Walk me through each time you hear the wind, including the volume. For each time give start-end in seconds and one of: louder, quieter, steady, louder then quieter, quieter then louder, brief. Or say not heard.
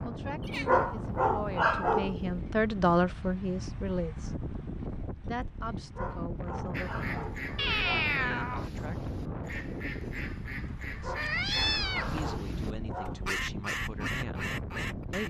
0.0-15.2 steady.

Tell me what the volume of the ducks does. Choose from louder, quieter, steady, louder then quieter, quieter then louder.
louder.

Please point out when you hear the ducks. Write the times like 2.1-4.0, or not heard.
6.7-15.2.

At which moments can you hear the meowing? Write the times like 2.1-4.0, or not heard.
0.4-0.8, 7.5-8.7, 11.2-12.3.